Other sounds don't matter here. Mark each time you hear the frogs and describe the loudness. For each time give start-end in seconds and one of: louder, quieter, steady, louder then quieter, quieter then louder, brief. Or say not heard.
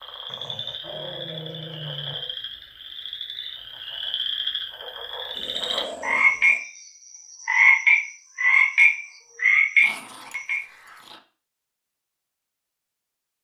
0.0-10.6 louder.